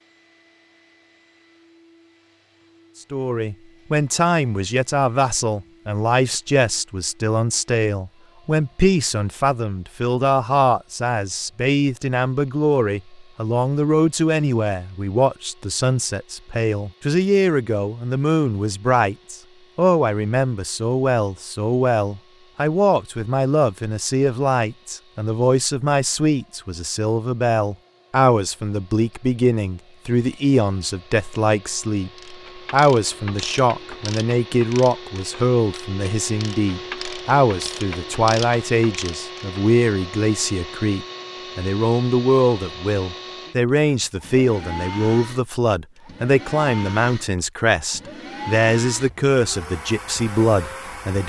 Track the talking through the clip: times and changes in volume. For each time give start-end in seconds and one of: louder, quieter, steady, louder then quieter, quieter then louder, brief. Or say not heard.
3.1-51.2 steady.